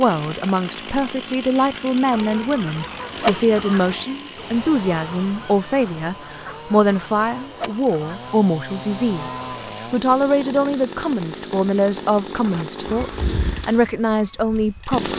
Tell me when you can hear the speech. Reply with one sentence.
You can hear the speech from 0.0 to 15.1 s.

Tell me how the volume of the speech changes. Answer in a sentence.
The volume of the speech stays about the same.